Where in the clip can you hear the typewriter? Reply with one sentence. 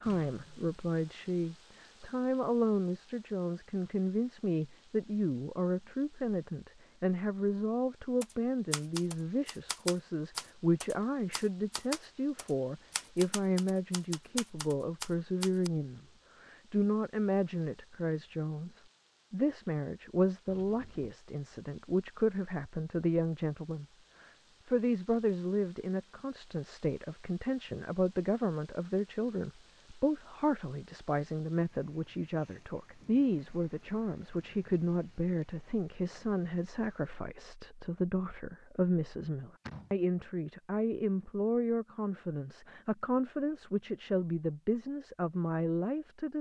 You can hear the typewriter from 8.2 to 15.7 s.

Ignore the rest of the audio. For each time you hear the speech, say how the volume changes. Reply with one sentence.
The speech can be heard from 0.0 to 46.3 s, at a steady volume.